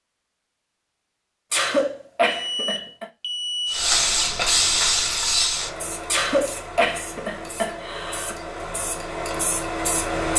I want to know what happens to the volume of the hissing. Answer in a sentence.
The loudness of the hissing goes down, then up.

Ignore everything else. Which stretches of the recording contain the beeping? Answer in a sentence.
The beeping can be heard from 2.2 to 4.2 s.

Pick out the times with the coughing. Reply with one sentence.
You can hear the coughing from 1.5 to 3.0 s and from 6.1 to 8.4 s.